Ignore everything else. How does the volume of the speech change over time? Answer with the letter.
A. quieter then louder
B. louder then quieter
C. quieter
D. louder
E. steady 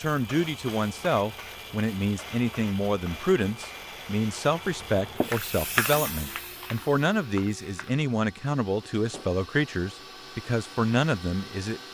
E.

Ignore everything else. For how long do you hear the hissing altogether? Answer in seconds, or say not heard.
8 s.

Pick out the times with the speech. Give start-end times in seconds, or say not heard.
0.0-11.8.